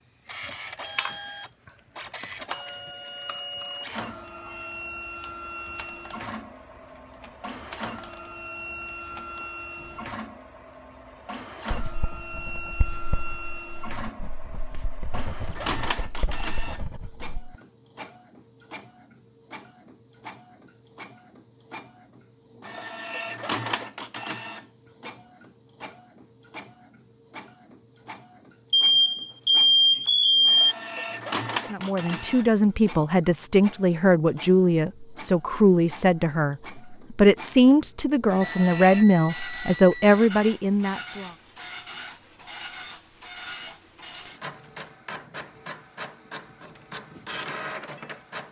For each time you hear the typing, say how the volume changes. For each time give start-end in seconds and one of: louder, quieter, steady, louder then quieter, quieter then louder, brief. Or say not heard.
0.3-10.2 quieter.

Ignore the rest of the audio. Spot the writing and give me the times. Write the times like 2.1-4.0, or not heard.
11.7-17.5.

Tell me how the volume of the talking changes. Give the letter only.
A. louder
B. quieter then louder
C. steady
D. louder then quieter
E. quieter
C.